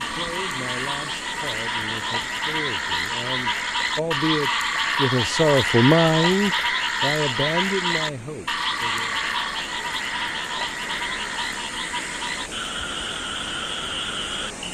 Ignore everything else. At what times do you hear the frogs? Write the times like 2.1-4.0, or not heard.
0.0-14.6.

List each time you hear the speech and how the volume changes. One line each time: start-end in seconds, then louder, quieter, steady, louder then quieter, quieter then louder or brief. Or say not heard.
0.0-9.2 louder then quieter.